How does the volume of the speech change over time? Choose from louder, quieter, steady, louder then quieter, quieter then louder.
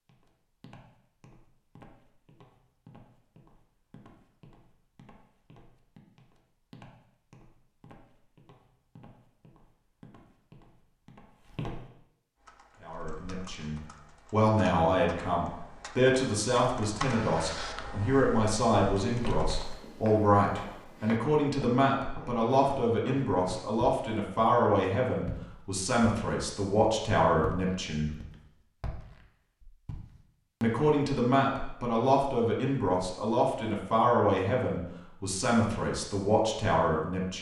steady.